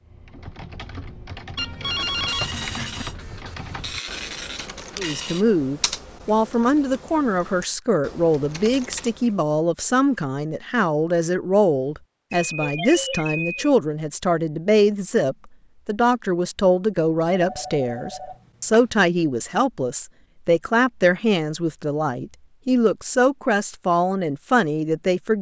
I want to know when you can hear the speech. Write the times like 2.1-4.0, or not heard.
5.0-25.3.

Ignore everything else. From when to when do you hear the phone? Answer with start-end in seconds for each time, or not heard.
1.6-3.0, 12.4-13.7, 17.3-18.9.